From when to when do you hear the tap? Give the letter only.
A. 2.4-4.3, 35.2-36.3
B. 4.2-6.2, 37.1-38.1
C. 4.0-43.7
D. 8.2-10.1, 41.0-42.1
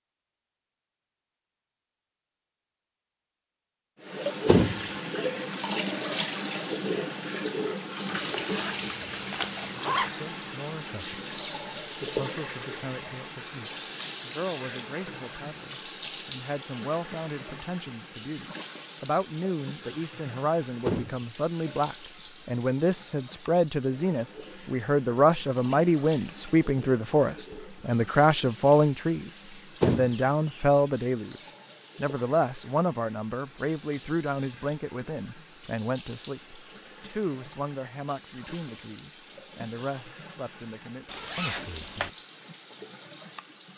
C.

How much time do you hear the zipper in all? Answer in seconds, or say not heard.
3 s.